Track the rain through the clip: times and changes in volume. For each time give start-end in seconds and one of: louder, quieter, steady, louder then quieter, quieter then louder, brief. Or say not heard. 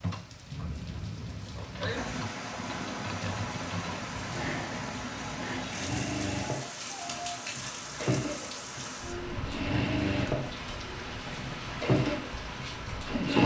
0.0-13.4 steady.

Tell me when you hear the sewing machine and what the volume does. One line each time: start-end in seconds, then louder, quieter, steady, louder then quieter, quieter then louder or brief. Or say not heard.
0.0-13.4 louder.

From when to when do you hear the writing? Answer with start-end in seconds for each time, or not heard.
not heard.